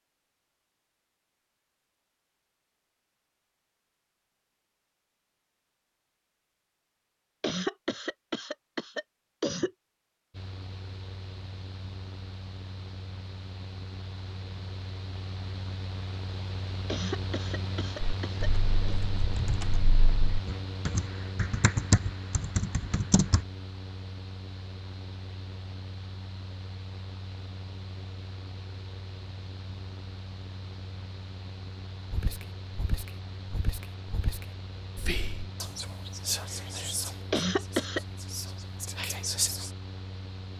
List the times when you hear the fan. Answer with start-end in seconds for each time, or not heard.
10.3-40.5.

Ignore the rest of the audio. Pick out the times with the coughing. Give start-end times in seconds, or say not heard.
7.4-9.7, 16.9-18.9, 37.3-38.0.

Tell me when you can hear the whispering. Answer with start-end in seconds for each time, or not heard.
32.1-39.7.